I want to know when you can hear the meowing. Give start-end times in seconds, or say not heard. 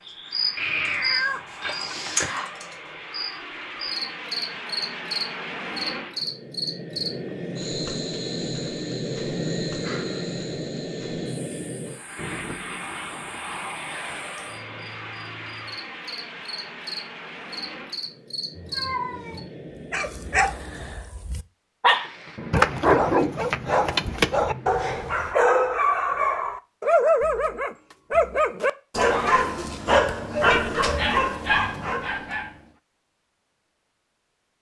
0.6-2.2, 18.6-19.4, 30.5-31.1.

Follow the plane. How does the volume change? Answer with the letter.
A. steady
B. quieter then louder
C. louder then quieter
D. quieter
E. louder
C.